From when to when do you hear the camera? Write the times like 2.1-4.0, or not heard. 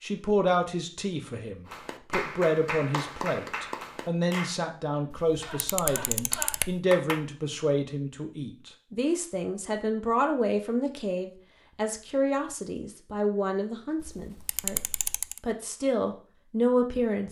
5.1-6.8, 14.0-15.4.